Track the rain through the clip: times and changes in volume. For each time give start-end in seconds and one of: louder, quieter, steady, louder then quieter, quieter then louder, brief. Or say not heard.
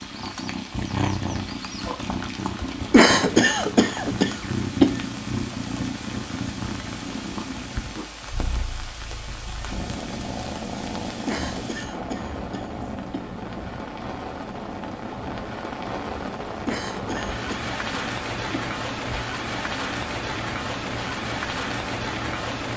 0.0-22.7 louder.